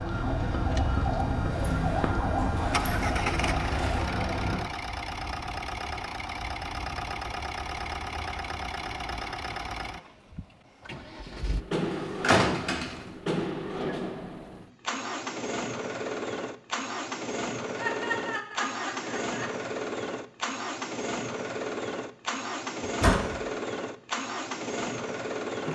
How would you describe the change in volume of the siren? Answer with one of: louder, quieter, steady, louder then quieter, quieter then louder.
steady.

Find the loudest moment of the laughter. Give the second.
18 s.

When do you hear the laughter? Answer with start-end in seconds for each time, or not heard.
17.8-19.6.